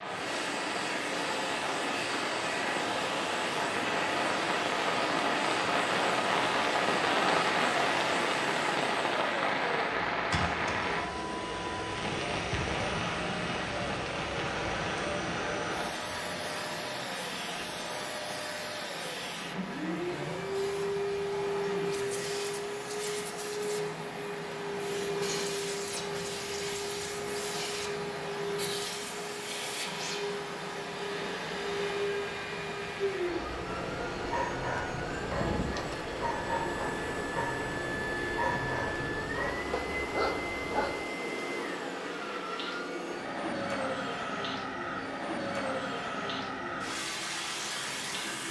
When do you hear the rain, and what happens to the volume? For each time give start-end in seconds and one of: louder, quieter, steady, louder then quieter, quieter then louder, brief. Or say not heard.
0.0-48.4 quieter.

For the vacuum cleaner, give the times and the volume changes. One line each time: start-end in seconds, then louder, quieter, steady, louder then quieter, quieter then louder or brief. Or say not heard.
0.1-48.4 steady.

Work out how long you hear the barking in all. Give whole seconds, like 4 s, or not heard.
7 s.